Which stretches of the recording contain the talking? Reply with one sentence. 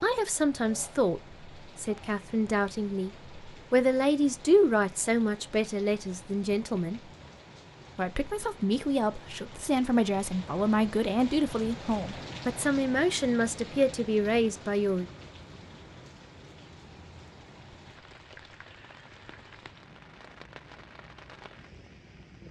You can hear the talking from 0.0 to 7.0 s and from 8.0 to 15.1 s.